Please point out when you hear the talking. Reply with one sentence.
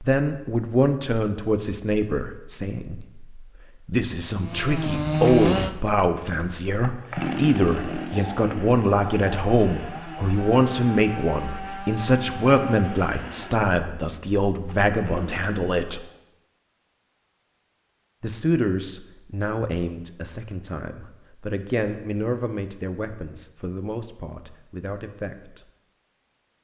You can hear the talking from 0.0 to 16.1 s and from 18.2 to 25.7 s.